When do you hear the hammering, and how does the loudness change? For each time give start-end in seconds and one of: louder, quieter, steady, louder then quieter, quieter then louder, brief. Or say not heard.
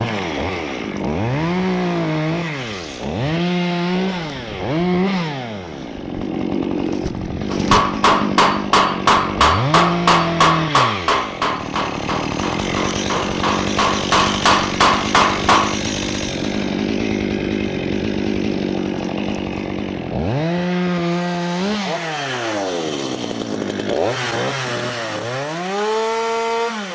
7.5-15.8 quieter then louder.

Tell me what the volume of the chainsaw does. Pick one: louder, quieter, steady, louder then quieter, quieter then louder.
steady.